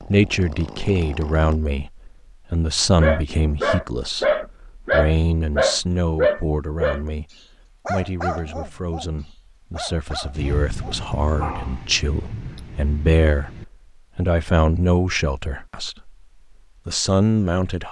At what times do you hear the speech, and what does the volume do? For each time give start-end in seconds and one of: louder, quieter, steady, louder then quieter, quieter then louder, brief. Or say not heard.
0.1-16.1 quieter then louder
16.9-17.8 brief.